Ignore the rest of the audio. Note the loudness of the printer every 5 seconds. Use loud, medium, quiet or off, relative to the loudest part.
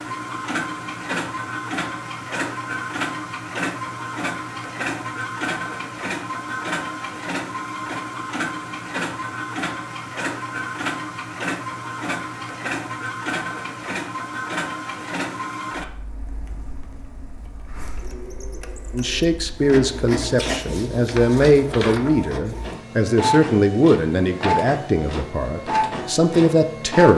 loud, loud, loud, medium, loud, loud.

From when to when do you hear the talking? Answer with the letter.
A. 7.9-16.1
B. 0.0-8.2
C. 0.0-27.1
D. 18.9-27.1
D.